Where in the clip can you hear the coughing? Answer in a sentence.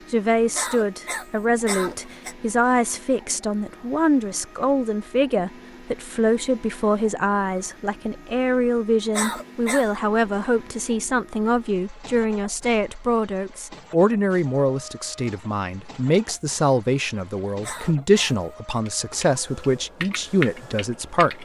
The coughing can be heard from 0.6 to 2.4 s, from 9.1 to 9.8 s and from 17.6 to 18.8 s.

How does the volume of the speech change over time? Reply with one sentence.
The volume of the speech stays about the same.